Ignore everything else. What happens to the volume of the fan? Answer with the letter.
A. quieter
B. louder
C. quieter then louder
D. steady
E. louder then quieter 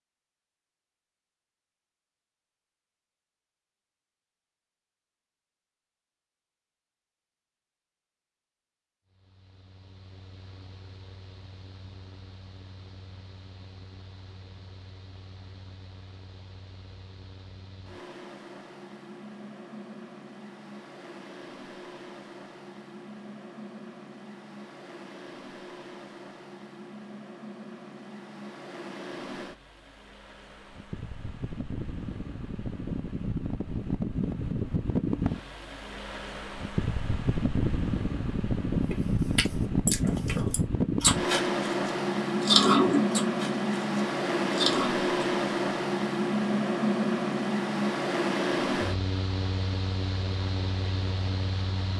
B.